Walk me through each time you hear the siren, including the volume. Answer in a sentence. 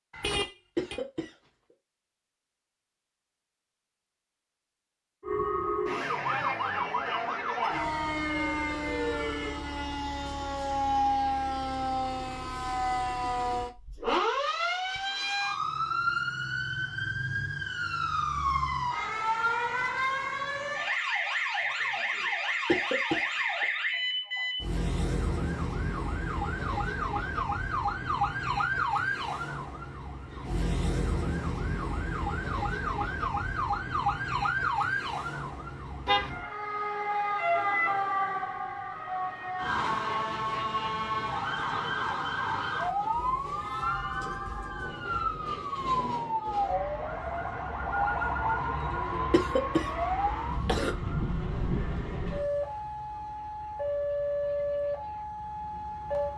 The siren can be heard from 5.2 to 56.3 s, at a steady volume.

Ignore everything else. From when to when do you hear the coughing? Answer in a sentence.
The coughing can be heard from 0.8 to 1.3 s, from 22.6 to 23.6 s and from 49.3 to 51.0 s.